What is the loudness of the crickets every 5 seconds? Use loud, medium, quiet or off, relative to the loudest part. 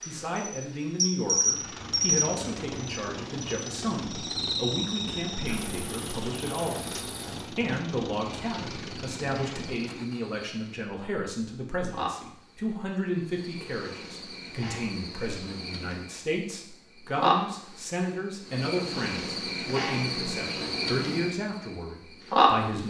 loud, quiet, quiet, medium, loud.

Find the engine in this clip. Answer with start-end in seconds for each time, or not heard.
1.2-10.2.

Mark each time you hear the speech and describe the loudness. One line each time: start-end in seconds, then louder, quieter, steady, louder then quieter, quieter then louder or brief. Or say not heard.
0.1-22.8 steady.